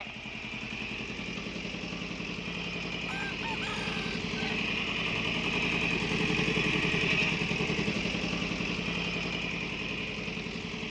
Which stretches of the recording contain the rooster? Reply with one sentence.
You can hear the rooster from 3.0 to 4.7 s.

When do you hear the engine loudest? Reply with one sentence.
The volume of the engine peaks at 7 seconds.